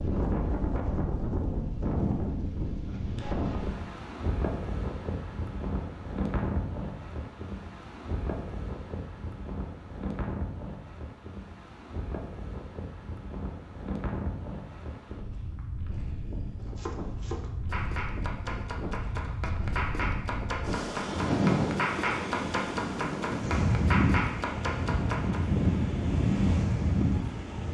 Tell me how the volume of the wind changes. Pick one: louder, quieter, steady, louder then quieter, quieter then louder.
quieter then louder.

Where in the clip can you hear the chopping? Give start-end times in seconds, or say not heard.
16.6-25.4.